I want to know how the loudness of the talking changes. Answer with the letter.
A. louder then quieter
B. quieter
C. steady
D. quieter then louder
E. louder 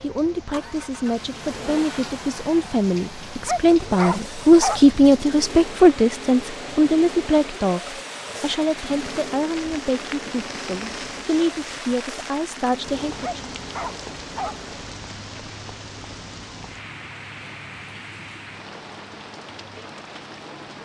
A.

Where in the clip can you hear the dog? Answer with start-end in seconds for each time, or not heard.
3.5-4.8, 13.2-14.6.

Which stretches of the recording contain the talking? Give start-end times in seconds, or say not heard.
0.0-13.5.